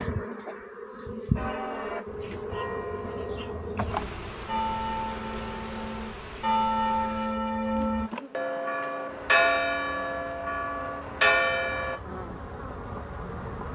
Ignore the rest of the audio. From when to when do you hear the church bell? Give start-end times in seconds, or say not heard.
1.4-12.0.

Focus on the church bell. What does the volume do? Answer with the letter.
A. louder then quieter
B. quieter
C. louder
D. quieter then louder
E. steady
C.